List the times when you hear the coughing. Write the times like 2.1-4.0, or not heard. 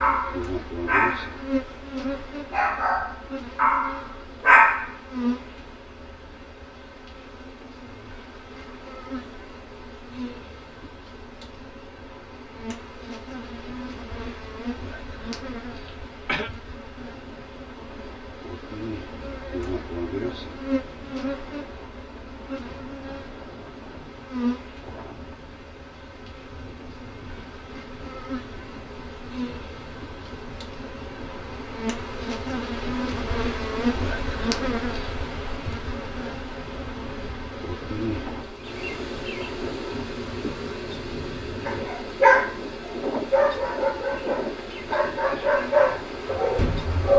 15.8-16.5.